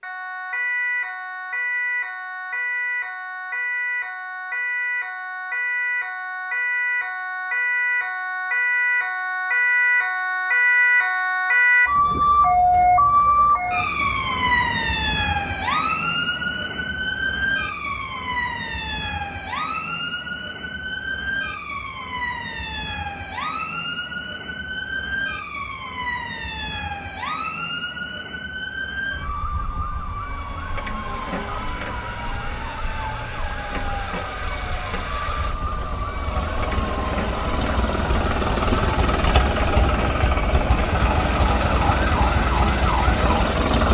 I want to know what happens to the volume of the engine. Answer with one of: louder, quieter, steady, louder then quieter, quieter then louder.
louder.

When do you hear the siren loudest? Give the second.
13 s.